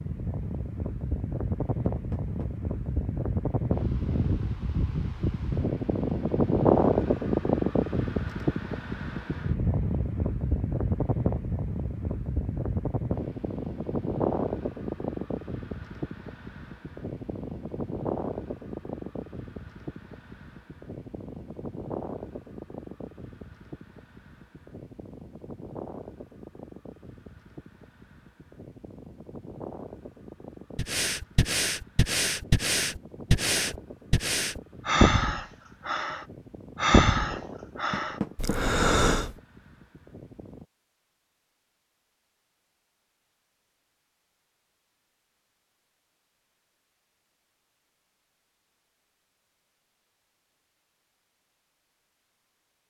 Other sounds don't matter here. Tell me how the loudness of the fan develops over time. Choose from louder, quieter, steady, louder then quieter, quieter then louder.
quieter.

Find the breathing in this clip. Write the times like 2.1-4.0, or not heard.
30.8-39.4.